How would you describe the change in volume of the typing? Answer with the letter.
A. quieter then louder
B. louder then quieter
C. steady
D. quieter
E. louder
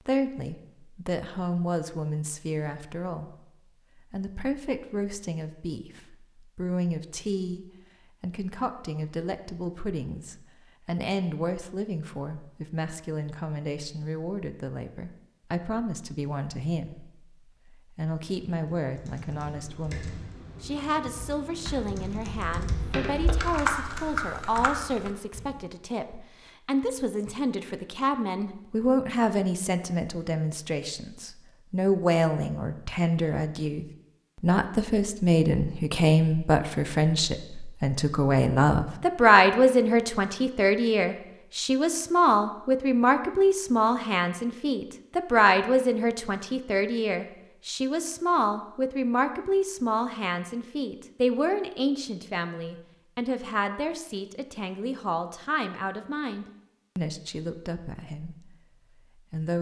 E.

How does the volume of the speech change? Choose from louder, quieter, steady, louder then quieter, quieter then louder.
louder then quieter.